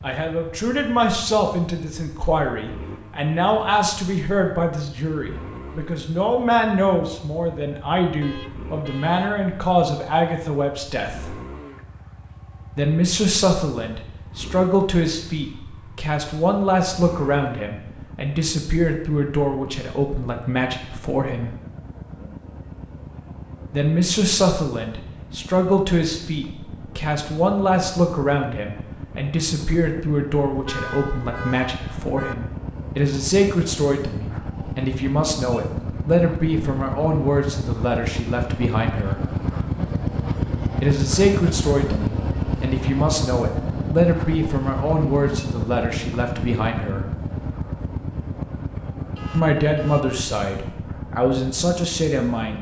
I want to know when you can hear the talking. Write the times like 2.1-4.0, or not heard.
0.0-11.3, 12.8-21.5, 23.7-39.2, 40.8-47.0, 49.3-52.5.